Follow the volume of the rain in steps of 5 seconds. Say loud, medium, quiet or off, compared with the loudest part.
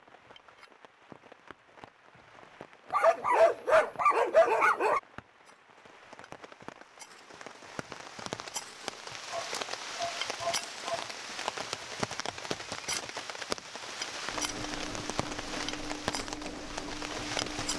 quiet, medium, loud, loud.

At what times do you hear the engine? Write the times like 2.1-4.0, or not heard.
14.2-17.7.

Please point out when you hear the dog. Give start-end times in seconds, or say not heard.
2.9-5.0, 9.3-11.2.